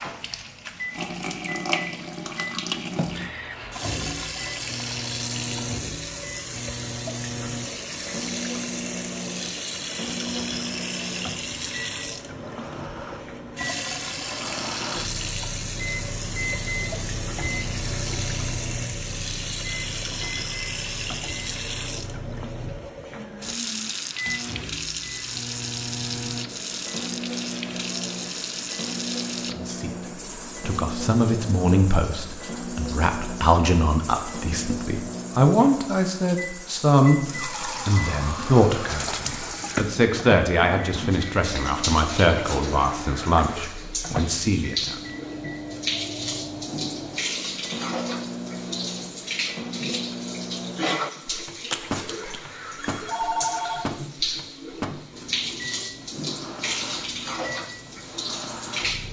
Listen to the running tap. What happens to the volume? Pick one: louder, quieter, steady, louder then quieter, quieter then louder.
steady.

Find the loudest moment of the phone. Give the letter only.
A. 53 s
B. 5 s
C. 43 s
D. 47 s
A.